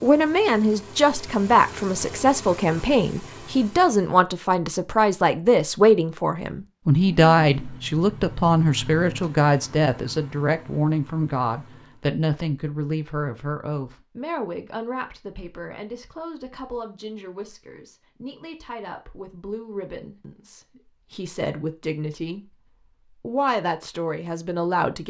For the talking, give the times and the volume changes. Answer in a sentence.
The talking can be heard from 0.0 to 22.4 s, getting quieter; and briefly from 23.2 to 25.0 s.